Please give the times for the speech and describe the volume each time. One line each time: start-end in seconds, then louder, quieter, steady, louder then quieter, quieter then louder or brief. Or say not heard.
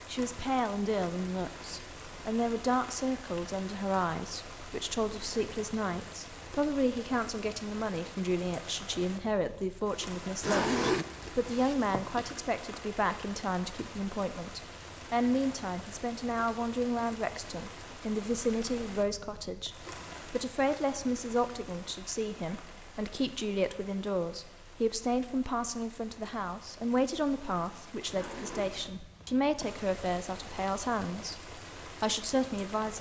0.1-32.9 steady.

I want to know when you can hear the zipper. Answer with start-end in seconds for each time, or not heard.
10.4-12.3, 28.1-29.7.